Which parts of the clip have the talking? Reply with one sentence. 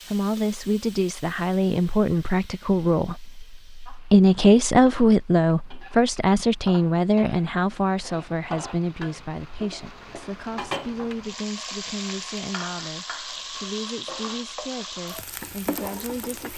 The talking can be heard from 0.1 to 16.5 s.